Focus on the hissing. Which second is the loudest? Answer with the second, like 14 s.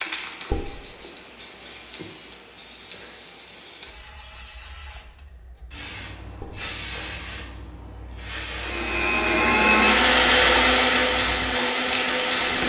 12 s.